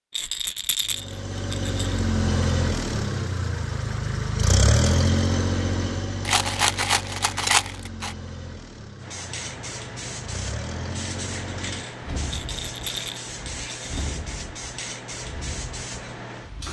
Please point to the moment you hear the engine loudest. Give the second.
5 s.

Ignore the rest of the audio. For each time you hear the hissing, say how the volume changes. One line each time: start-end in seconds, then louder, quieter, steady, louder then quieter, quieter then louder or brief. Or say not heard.
9.0-16.6 steady.